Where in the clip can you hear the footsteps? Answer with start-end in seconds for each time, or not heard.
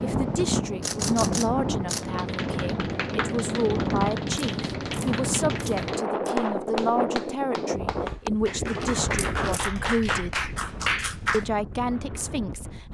not heard.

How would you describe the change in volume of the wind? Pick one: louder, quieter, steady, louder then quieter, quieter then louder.
quieter.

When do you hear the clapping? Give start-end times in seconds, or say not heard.
1.9-11.4.